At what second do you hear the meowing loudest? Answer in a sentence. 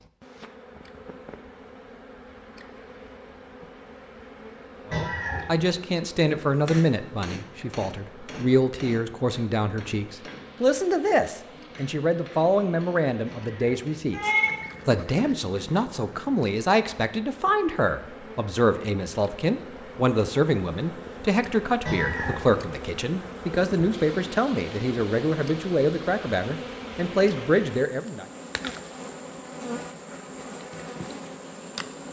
The loudest moment of the meowing is at 14 seconds.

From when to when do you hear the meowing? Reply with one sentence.
The meowing can be heard from 4.9 to 5.7 s, from 13.2 to 14.6 s and from 21.9 to 22.6 s.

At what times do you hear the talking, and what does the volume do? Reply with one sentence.
You can hear the talking from 4.9 to 28.2 s, at a steady volume.